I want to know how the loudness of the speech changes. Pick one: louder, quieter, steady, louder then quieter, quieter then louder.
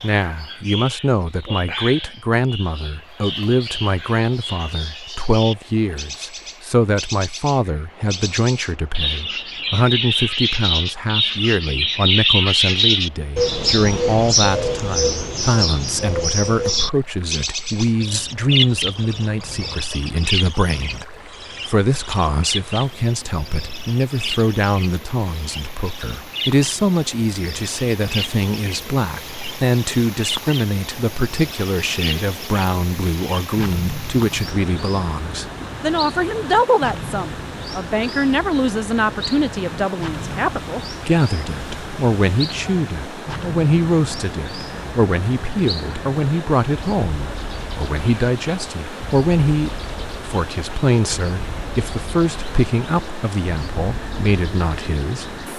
steady.